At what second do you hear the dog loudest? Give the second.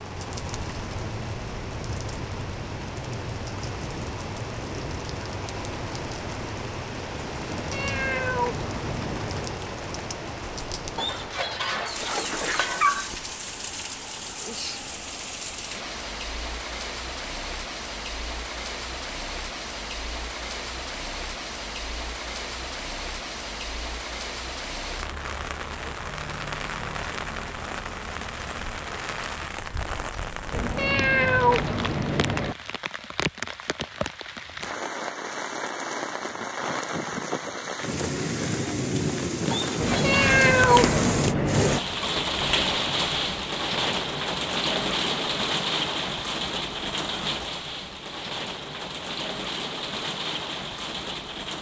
13 s.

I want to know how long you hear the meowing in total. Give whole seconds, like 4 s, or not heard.
6 s.